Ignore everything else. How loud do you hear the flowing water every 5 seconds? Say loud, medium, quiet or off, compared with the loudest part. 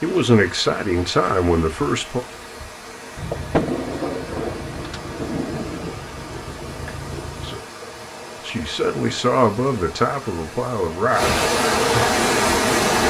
quiet, quiet, loud.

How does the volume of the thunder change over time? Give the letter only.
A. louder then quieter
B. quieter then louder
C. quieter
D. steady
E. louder
C.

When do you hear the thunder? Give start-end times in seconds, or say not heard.
3.1-7.6.